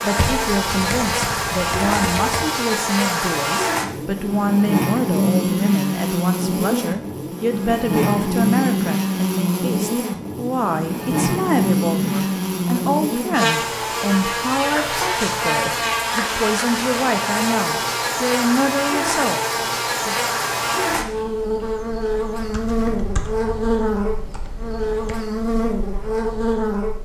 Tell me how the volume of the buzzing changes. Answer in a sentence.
The loudness of the buzzing stays about the same.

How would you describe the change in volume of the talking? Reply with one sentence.
The volume of the talking stays about the same.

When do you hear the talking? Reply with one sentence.
The talking can be heard from 0.0 to 20.1 s.